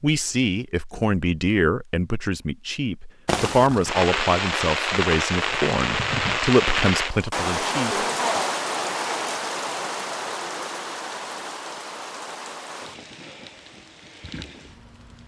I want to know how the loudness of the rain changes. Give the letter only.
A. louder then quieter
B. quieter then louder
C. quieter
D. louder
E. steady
C.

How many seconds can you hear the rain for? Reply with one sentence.
The rain can be heard for 12 seconds in total.